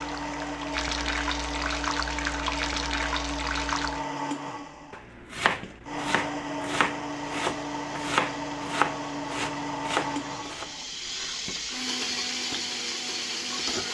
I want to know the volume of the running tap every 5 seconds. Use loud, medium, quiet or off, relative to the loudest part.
loud, quiet, loud.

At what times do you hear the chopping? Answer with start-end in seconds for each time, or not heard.
4.9-10.7.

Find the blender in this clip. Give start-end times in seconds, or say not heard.
0.0-13.8.